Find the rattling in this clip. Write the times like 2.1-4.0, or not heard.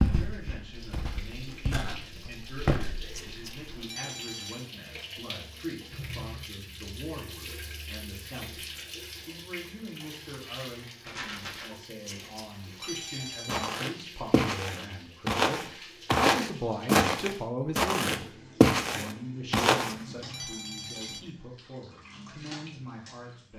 11.0-11.7.